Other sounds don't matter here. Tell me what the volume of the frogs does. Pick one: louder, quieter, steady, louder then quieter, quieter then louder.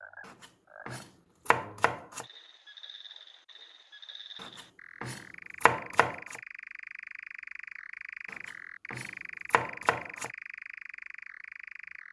louder.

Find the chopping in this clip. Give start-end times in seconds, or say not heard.
0.2-2.2, 4.4-6.4, 8.3-10.3.